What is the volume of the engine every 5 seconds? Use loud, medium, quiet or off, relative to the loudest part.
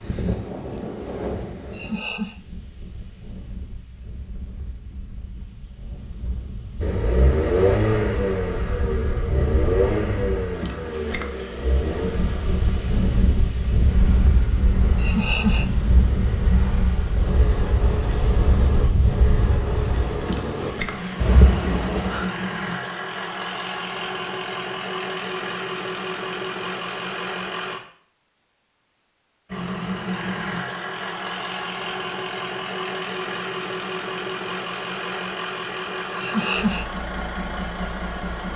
off, loud, medium, medium, medium, medium, medium, medium.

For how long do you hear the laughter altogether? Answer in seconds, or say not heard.
2 s.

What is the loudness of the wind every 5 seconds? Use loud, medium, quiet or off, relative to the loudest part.
medium, medium, loud, loud, loud, off, off, off.